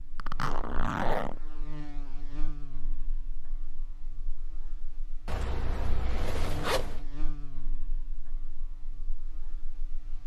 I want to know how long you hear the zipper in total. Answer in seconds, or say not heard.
3 s.